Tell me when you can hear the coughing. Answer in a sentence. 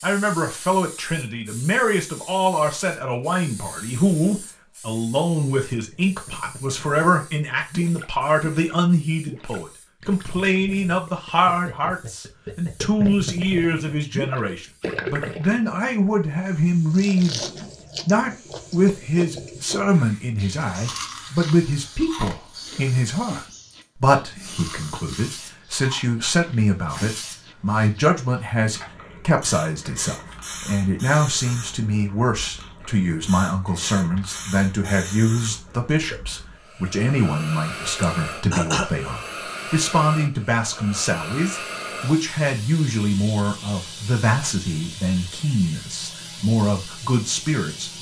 The coughing can be heard from 38.0 to 38.9 s.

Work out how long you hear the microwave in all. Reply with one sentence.
You can't hear the microwave here.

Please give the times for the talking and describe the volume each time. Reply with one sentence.
You can hear the talking from 0.0 to 47.9 s, at a steady volume.